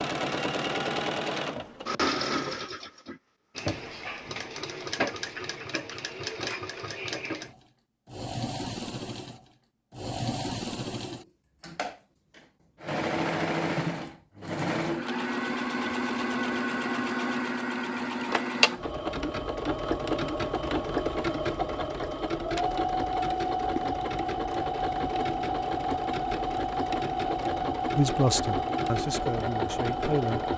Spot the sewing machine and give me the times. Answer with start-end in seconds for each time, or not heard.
0.0-30.5.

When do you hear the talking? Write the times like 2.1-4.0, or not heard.
27.9-30.4.